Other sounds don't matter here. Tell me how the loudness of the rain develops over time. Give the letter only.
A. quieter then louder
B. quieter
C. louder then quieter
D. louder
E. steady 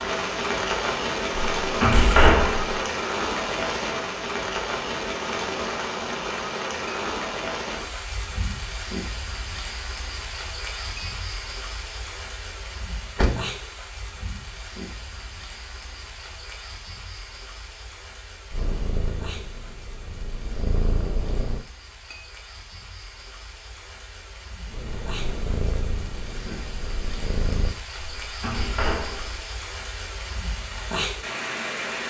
A.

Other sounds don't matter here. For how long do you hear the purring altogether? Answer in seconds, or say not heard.
6 s.